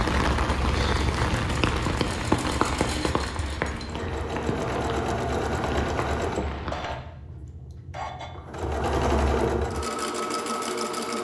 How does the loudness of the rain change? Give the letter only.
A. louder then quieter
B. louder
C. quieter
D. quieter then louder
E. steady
C.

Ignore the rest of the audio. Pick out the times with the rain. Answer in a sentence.
You can hear the rain from 0.0 to 7.0 s.